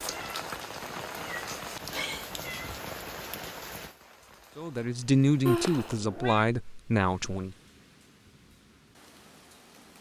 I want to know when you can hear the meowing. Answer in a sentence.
The meowing can be heard from 0.1 to 2.8 s and from 5.5 to 6.5 s.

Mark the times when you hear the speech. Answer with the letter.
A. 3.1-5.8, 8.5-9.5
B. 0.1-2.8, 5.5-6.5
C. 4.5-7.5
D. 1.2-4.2
C.